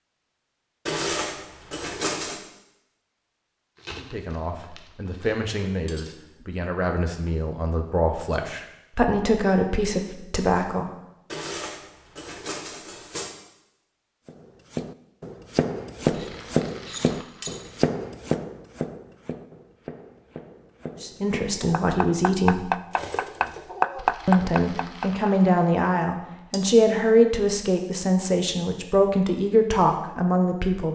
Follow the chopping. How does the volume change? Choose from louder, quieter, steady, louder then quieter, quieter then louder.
quieter then louder.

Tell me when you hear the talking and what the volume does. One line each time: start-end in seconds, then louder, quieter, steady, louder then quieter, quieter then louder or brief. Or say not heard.
4.0-10.9 louder
21.0-22.7 brief
24.2-30.9 steady.